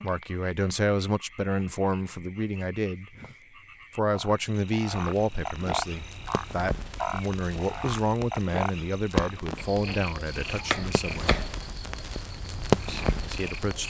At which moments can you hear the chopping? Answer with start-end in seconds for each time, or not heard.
9.8-11.5.